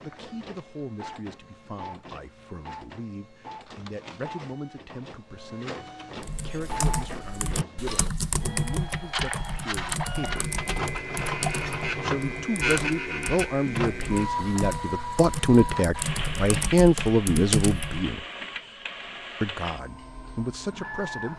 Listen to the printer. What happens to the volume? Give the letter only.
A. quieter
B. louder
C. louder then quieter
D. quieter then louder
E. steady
C.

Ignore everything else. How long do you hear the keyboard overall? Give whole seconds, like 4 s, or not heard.
12 s.